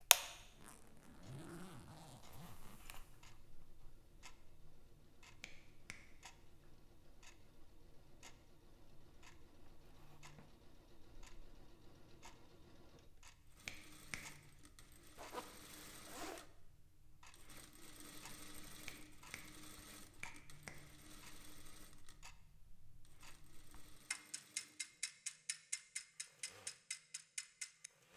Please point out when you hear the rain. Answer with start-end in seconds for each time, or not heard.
not heard.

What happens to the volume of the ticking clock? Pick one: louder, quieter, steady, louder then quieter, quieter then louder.
quieter then louder.